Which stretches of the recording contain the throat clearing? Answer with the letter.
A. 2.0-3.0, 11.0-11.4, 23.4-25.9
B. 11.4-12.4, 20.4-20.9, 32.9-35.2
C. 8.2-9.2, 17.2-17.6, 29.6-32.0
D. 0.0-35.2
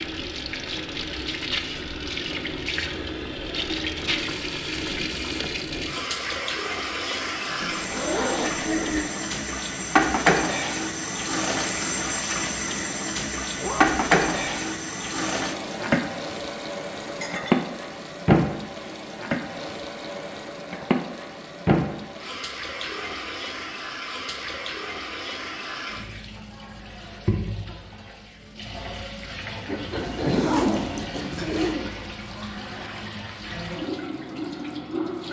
C.